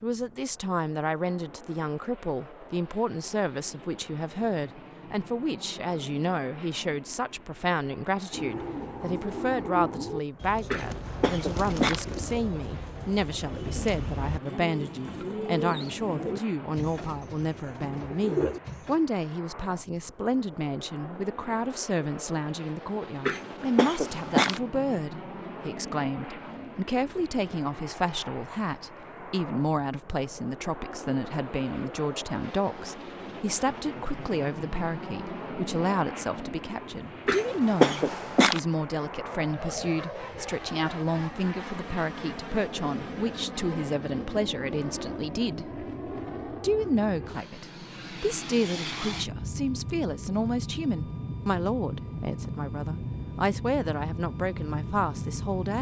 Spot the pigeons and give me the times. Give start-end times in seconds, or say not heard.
8.3-18.9.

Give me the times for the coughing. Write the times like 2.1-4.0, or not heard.
10.7-12.1, 23.2-24.6, 37.2-38.6.